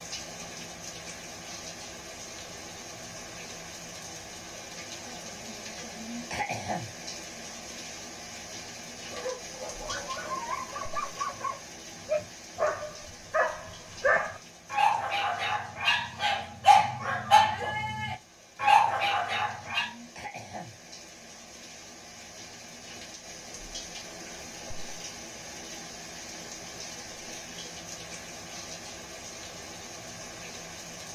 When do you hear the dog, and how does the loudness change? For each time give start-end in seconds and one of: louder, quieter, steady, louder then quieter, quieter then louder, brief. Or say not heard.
9.1-19.9 louder.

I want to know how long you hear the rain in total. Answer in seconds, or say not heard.
31 s.